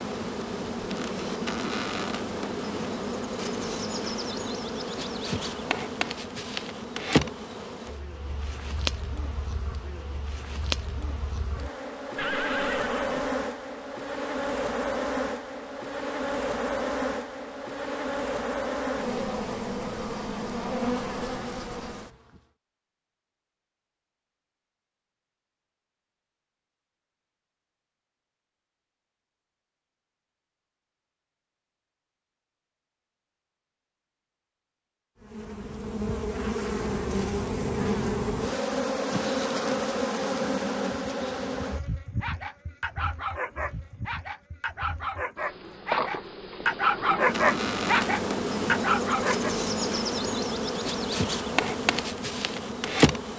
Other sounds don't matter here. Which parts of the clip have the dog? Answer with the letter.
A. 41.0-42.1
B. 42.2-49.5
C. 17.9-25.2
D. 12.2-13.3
B.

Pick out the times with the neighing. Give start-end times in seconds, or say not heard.
12.2-13.3.